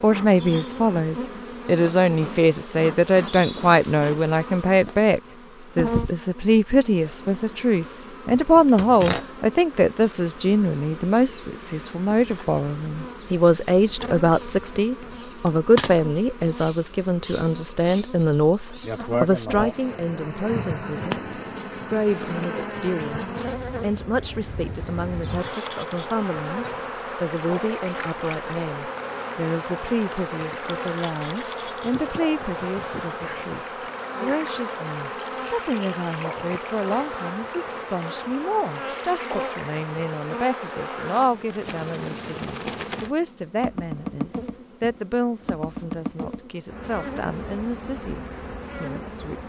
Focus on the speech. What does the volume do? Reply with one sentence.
The loudness of the speech goes down.